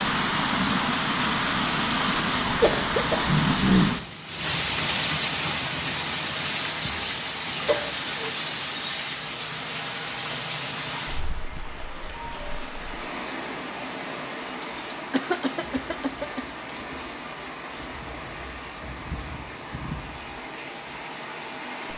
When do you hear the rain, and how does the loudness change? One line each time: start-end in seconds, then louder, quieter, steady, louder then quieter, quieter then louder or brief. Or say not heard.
0.0-21.9 quieter.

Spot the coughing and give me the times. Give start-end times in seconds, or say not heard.
2.6-3.3, 7.6-8.3, 15.1-16.4.